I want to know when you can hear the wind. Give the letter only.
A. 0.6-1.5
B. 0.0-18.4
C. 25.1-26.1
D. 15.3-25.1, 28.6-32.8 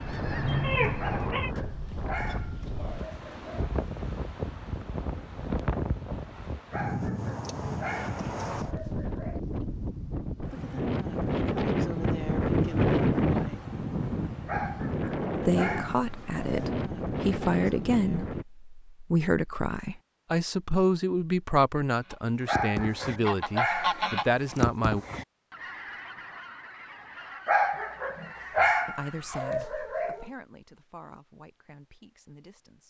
B.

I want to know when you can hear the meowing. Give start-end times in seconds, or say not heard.
0.6-1.5.